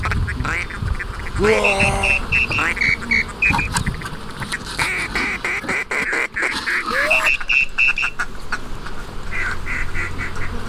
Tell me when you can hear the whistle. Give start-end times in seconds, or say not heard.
1.6-3.7, 7.1-8.1.